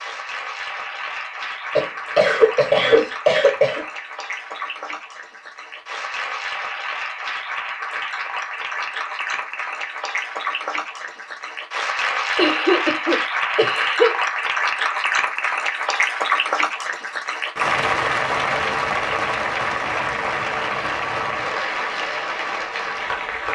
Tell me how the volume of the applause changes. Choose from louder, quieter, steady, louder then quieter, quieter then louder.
louder.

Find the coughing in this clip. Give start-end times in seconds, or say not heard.
1.8-3.9, 12.3-14.2.